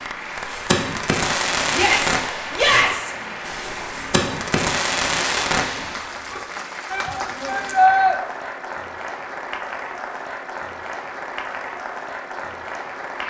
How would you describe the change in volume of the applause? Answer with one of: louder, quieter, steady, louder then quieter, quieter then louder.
steady.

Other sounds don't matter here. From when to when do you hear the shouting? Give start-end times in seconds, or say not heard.
1.7-3.1, 6.9-8.2.